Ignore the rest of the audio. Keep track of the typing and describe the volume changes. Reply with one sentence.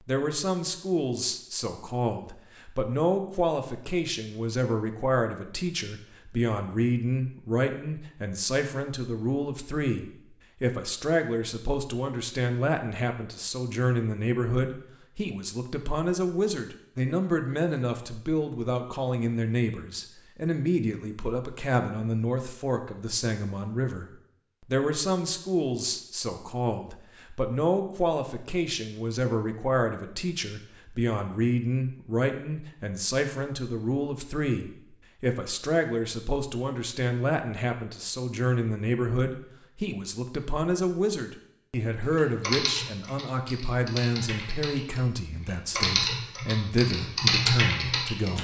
The volume of the typing goes down, then up.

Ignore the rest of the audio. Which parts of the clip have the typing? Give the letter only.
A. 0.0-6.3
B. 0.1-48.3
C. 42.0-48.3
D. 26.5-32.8
C.